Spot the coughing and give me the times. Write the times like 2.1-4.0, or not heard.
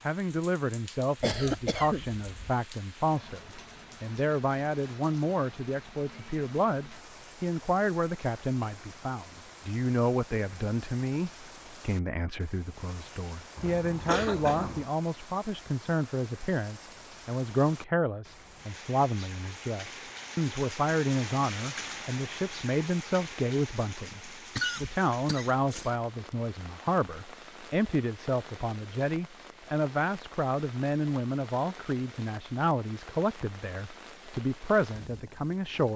1.2-2.5, 13.6-14.9, 24.6-25.9.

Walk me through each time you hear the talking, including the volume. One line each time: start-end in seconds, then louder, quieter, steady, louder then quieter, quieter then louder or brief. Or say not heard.
0.1-35.9 steady.